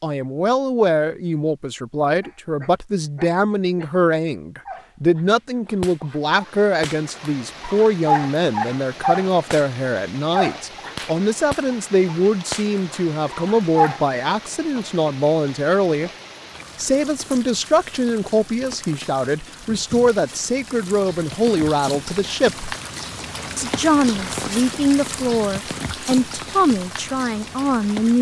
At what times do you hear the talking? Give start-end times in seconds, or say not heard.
0.0-16.1, 16.8-22.7, 23.6-28.1.